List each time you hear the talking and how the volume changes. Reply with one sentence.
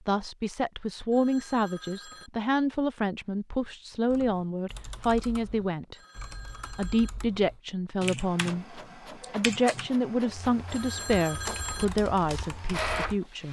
The talking can be heard from 0.1 to 6.0 s, at a steady volume; and from 6.8 to 13.4 s, at a steady volume.